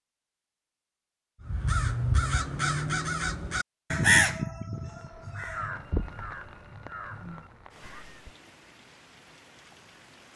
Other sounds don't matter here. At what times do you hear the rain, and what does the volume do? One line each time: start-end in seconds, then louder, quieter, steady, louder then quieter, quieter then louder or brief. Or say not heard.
4.7-10.3 quieter.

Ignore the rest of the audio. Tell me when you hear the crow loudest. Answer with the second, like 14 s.
4 s.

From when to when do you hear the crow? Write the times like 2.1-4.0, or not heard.
1.4-8.3.